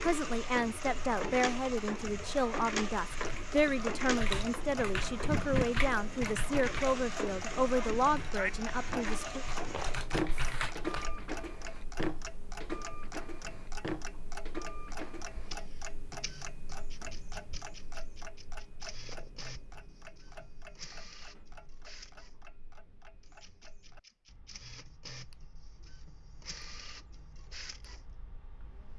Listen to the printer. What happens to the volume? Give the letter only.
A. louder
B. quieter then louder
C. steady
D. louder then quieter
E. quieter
E.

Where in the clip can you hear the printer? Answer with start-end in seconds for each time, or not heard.
0.0-28.9.